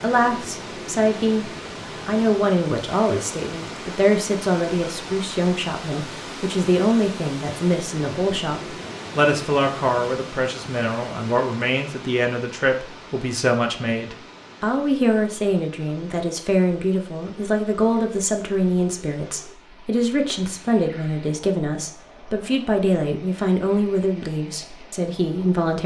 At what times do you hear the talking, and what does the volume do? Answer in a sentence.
The talking can be heard from 0.0 to 25.8 s, at a steady volume.